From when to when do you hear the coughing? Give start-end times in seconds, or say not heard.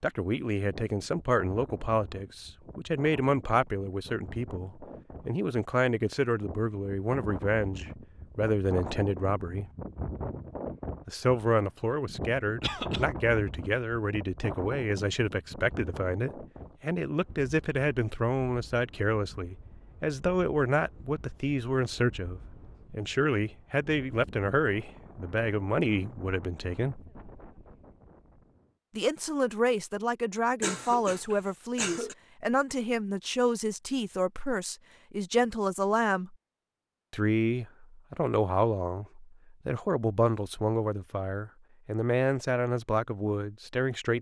12.6-13.1, 30.6-32.1.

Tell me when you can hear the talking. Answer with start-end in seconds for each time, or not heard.
0.0-9.7, 11.1-27.1, 28.9-36.4, 37.1-44.1.